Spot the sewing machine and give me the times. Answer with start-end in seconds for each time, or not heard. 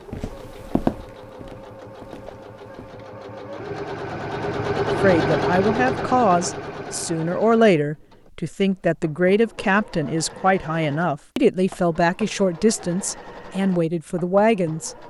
0.0-15.0.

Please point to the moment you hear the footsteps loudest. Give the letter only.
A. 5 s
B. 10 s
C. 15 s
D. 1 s
D.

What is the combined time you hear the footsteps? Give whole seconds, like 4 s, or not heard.
3 s.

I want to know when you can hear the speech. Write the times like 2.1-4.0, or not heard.
5.0-14.9.